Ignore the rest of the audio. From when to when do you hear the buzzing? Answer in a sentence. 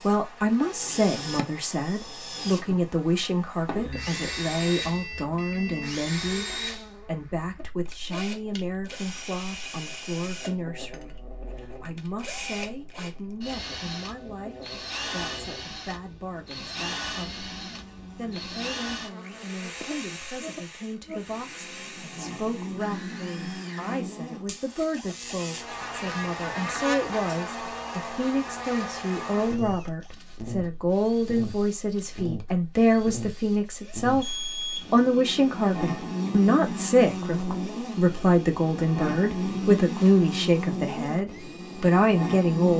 The buzzing can be heard from 0.0 to 42.7 s.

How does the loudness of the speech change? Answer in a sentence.
The volume of the speech goes down, then up.